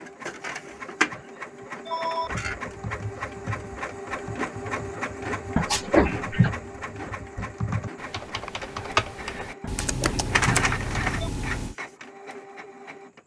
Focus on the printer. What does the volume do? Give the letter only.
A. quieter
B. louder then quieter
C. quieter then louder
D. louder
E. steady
C.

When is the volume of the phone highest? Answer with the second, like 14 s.
6 s.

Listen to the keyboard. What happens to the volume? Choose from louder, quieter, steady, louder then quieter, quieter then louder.
quieter then louder.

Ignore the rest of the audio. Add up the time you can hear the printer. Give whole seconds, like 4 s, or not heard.
13 s.